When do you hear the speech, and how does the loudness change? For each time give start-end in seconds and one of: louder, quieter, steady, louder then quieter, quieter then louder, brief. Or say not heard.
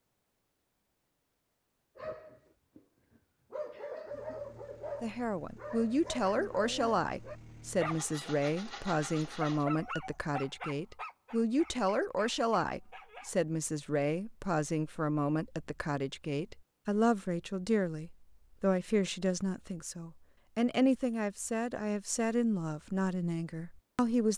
5.0-24.3 steady.